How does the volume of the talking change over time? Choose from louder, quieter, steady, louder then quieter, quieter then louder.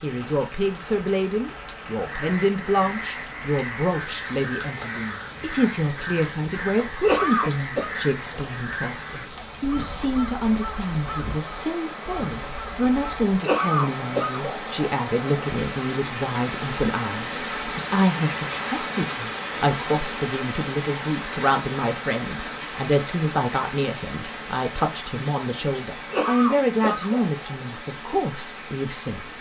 steady.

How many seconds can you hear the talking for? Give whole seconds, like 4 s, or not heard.
29 s.